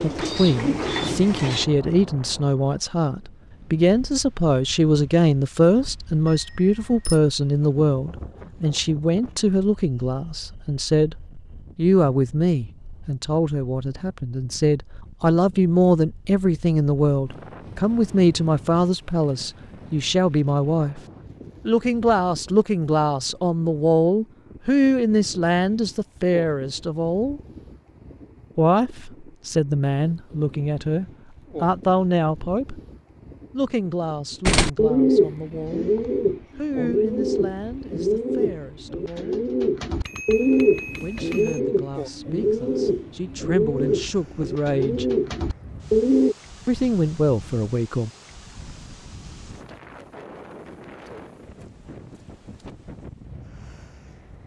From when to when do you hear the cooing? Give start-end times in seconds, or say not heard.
0.0-1.6, 34.5-46.4.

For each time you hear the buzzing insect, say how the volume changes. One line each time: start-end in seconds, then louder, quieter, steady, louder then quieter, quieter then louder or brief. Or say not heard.
not heard.